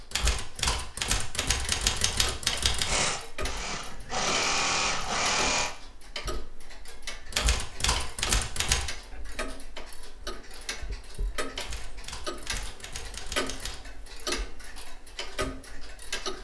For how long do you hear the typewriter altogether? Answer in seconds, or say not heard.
7 s.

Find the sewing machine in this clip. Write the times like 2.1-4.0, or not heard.
2.9-5.7.